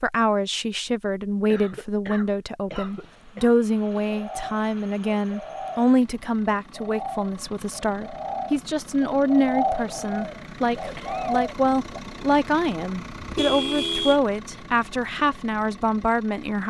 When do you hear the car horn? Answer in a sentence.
The car horn can be heard from 13.2 to 14.2 s.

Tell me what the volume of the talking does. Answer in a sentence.
The loudness of the talking stays about the same.